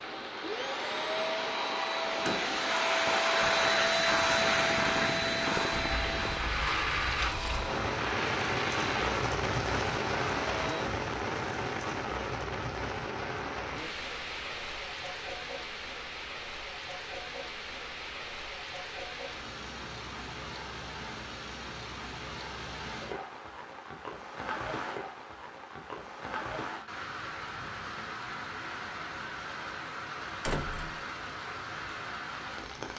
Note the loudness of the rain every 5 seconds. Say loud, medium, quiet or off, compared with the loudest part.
medium, loud, loud, medium, medium, medium, medium.